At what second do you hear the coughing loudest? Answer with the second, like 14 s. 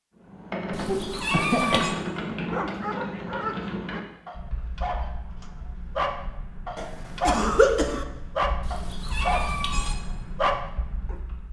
8 s.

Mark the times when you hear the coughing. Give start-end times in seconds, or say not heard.
0.8-1.9, 6.8-8.1.